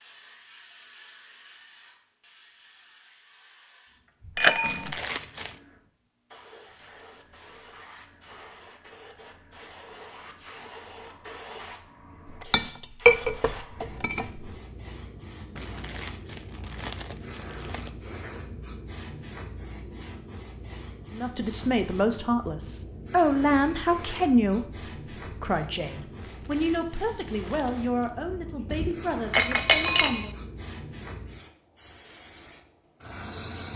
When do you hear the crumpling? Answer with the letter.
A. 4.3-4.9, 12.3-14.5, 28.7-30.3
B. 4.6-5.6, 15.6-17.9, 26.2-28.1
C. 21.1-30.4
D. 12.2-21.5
B.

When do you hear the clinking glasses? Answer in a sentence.
The clinking glasses can be heard from 4.3 to 4.9 s, from 12.3 to 14.5 s and from 28.7 to 30.3 s.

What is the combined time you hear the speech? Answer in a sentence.
The speech can be heard for 9 seconds in total.